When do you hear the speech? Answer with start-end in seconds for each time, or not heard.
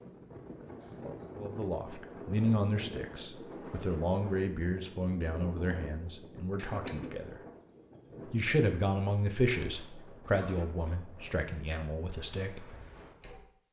1.4-7.4, 8.3-12.7.